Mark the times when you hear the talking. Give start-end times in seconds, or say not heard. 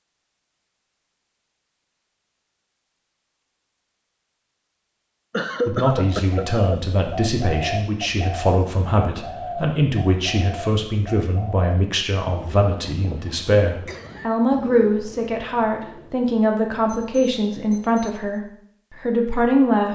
5.7-19.8.